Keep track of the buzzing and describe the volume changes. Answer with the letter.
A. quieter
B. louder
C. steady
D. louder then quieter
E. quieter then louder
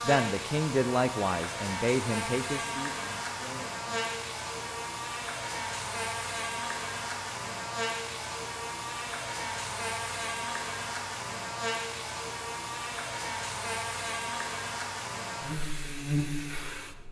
C.